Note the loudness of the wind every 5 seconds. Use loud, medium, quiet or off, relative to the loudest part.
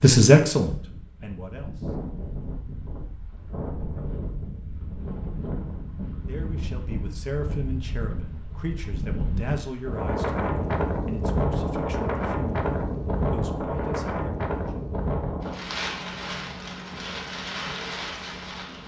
medium, medium, loud, medium.